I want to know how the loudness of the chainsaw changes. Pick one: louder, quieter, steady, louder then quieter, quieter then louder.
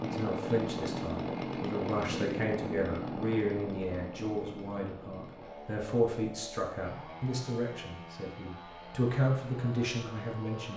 quieter.